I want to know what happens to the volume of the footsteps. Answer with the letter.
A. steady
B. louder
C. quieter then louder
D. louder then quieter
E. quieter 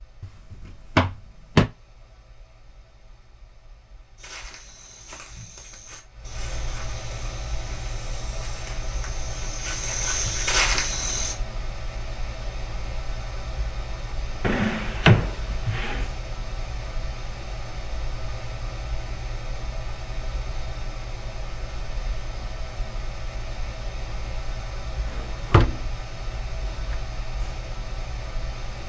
B.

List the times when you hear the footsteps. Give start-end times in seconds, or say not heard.
4.2-11.3.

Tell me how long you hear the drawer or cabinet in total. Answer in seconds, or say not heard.
4 s.